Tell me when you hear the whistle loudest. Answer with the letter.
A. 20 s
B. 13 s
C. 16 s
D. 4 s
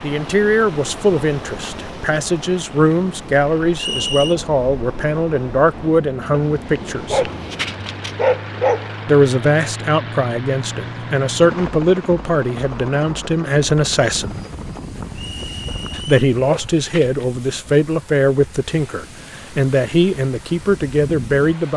D.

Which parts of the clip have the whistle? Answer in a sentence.
You can hear the whistle from 3.8 to 4.3 s and from 15.1 to 16.1 s.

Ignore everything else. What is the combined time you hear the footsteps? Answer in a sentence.
You can't hear the footsteps here.